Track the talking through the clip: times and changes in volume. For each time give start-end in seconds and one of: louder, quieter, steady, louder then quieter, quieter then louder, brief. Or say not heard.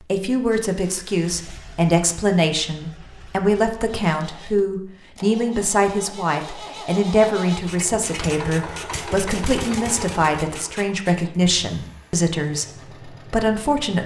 0.0-14.0 steady.